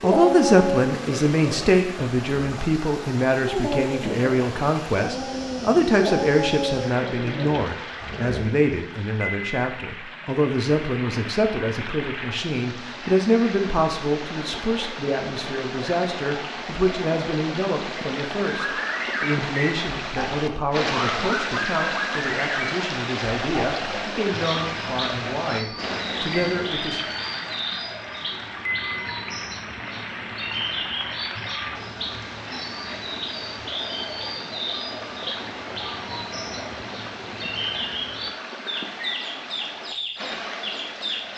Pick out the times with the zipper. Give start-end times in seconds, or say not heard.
not heard.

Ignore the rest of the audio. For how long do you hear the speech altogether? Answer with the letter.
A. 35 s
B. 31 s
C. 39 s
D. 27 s
D.